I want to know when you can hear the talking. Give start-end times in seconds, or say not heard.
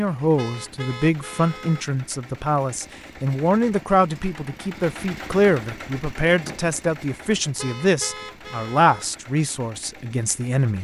0.0-10.8.